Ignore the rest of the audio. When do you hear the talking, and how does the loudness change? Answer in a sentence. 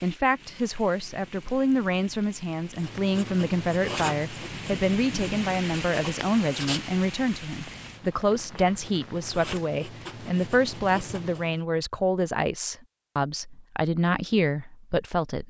The talking can be heard from 0.0 to 15.4 s, at a steady volume.